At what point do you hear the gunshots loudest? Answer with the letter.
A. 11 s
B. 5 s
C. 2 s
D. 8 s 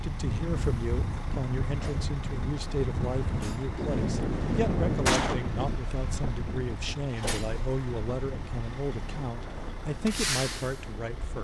B.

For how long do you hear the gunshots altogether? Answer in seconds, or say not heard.
2 s.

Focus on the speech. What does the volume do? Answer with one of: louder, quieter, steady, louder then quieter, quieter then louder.
steady.